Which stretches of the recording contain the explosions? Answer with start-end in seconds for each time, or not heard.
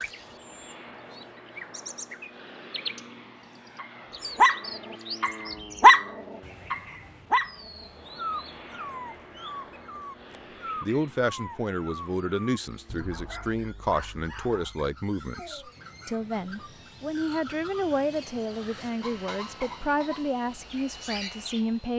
not heard.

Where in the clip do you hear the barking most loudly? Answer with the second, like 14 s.
6 s.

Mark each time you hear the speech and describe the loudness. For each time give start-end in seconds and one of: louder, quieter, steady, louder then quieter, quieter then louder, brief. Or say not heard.
10.8-21.9 steady.